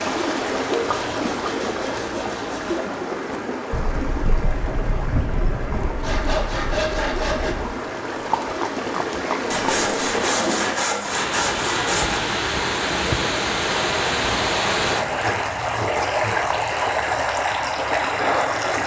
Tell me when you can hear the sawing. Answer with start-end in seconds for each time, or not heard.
0.8-2.9, 6.0-7.5, 9.5-12.2, 14.8-16.6.